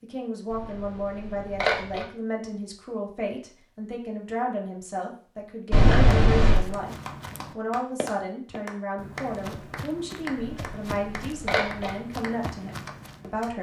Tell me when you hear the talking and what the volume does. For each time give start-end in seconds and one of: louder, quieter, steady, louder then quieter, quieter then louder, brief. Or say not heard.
0.0-13.5 steady.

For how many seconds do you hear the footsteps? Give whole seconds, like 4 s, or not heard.
7 s.